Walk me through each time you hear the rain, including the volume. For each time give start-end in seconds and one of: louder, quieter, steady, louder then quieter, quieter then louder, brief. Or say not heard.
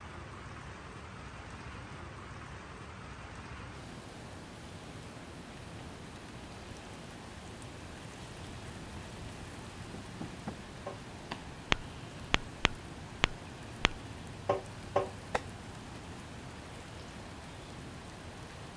0.0-18.7 steady.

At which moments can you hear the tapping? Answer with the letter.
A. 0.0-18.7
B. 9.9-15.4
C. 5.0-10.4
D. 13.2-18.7
B.